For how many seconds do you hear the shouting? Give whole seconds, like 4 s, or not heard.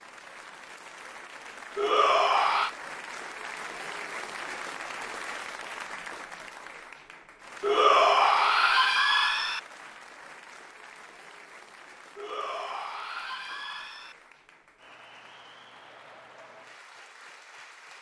5 s.